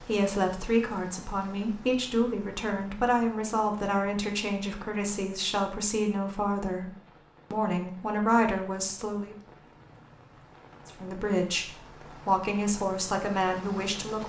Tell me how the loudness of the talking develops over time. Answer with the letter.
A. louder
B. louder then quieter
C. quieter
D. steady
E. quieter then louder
D.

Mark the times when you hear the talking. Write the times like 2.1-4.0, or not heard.
0.0-9.3, 10.8-14.2.